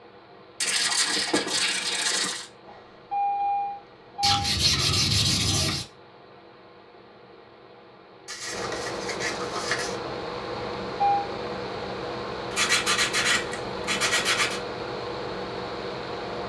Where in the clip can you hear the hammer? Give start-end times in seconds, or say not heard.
not heard.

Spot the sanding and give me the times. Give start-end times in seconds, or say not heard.
0.6-2.5, 4.2-5.8, 8.2-9.9, 12.5-14.6.